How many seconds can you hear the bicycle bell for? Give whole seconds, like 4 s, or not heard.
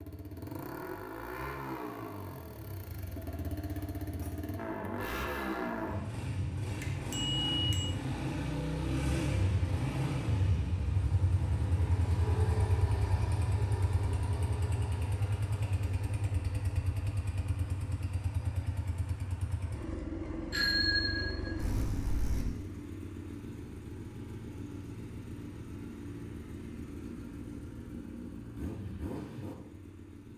3 s.